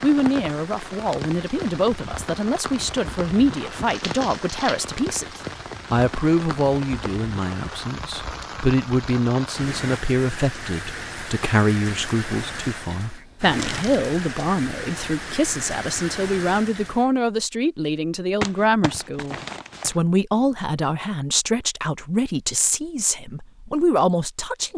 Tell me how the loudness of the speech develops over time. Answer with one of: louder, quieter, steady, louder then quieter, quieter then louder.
steady.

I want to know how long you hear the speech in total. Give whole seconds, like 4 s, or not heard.
25 s.